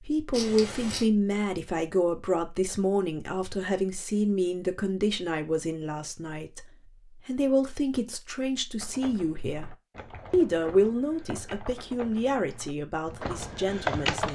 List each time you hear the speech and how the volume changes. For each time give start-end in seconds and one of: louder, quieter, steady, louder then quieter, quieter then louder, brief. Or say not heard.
0.0-6.7 quieter
7.2-14.3 louder then quieter.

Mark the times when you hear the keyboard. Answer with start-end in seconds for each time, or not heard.
8.8-14.3.